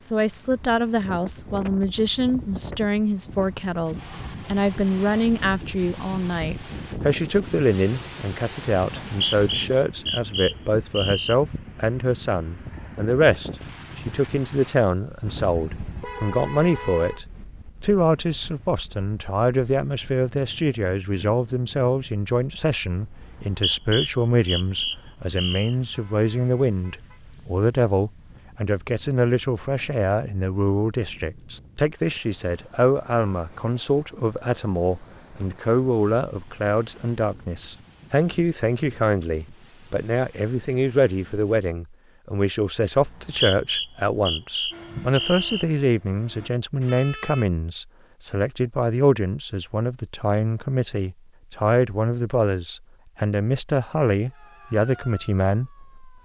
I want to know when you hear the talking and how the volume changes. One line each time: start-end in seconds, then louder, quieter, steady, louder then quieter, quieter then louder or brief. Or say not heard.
0.0-56.1 steady.